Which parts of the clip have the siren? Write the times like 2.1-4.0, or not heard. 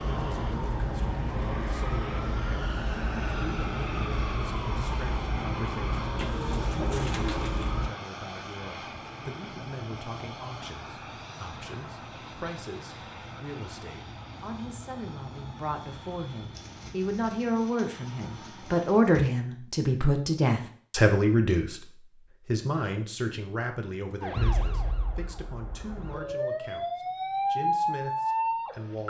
0.0-7.9, 24.2-29.0.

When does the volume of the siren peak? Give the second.
28 s.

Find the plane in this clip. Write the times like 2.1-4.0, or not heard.
0.0-19.1.